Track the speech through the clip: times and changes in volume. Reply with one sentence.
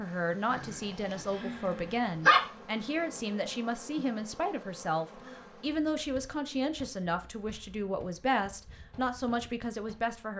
The speech can be heard from 0.0 to 10.3 s, at a steady volume.